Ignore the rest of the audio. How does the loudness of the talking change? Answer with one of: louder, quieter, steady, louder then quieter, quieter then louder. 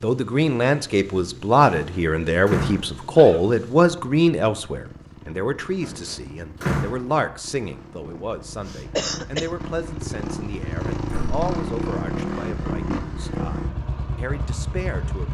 quieter.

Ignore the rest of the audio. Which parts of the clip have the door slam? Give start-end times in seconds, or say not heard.
1.8-2.9, 5.8-7.0, 11.1-11.5.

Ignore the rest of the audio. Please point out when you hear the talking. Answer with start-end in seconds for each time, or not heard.
0.0-15.3.